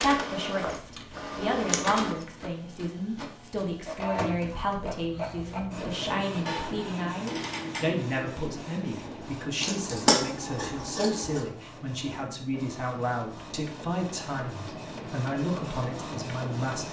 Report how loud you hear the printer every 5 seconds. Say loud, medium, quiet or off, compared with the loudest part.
loud, loud, medium, loud.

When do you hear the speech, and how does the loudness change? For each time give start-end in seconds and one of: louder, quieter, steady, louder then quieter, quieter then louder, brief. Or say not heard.
0.0-16.8 steady.